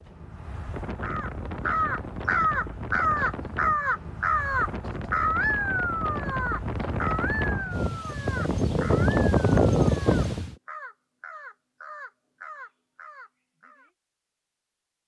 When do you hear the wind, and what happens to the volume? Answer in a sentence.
The wind can be heard from 0.0 to 10.6 s, getting louder.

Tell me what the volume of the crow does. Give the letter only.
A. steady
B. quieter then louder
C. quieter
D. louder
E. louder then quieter
C.